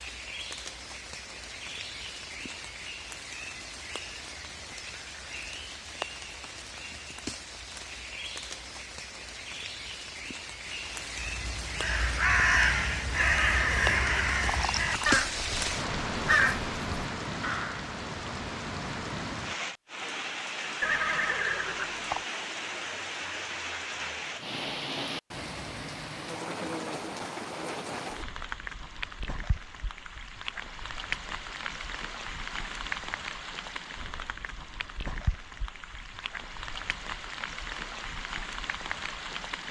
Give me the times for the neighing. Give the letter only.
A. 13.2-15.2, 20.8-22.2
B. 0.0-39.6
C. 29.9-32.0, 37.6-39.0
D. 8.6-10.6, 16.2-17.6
A.